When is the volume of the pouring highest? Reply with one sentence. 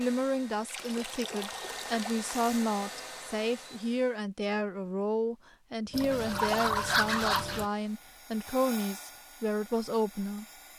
The loudest moment of the pouring is at 7 seconds.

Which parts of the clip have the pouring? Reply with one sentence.
You can hear the pouring from 0.7 to 2.6 s and from 5.9 to 7.7 s.